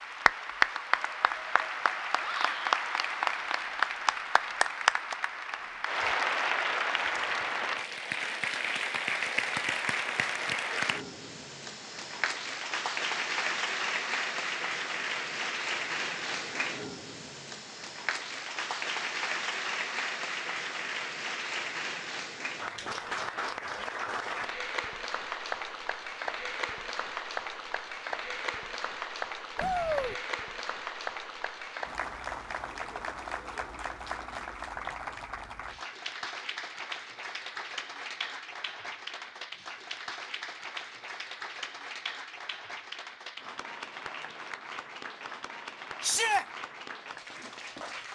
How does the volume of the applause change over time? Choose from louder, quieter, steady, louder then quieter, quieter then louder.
quieter.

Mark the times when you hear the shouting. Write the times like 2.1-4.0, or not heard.
2.2-2.6, 29.6-30.1, 46.0-46.5.